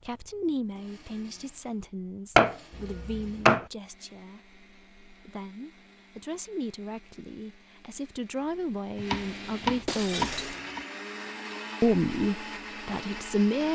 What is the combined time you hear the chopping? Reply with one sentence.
You can hear the chopping for 3 seconds altogether.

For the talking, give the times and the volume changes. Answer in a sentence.
You can hear the talking from 0.1 to 10.4 s, getting quieter then louder; and briefly from 11.8 to 13.7 s.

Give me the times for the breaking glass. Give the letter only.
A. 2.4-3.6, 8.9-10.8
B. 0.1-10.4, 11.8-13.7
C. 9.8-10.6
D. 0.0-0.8
C.